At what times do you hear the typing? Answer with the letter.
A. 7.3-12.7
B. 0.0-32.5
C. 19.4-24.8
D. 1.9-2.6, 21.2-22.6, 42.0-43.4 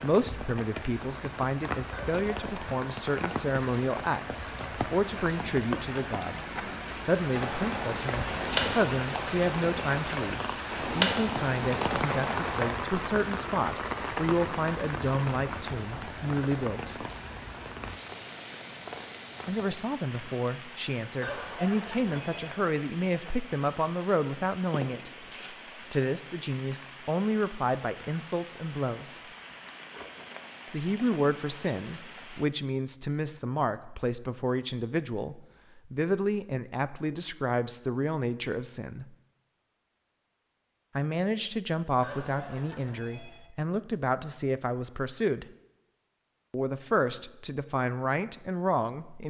A.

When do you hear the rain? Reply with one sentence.
You can hear the rain from 0.0 to 32.5 s.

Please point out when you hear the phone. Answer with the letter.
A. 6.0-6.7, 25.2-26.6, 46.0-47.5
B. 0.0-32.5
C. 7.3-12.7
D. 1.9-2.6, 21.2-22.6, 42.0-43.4
D.